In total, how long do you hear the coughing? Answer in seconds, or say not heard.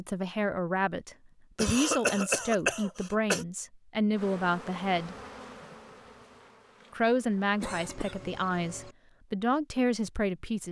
3 s.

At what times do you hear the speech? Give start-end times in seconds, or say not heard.
0.0-5.2, 6.9-10.6.